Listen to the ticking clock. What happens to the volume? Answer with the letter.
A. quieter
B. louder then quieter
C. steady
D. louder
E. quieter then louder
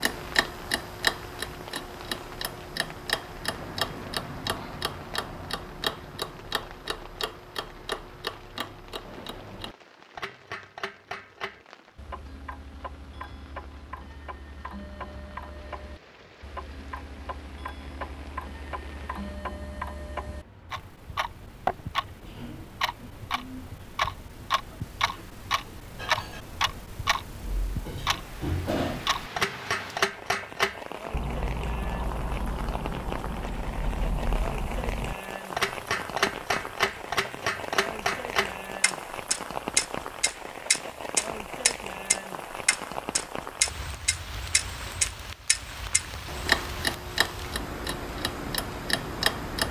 E.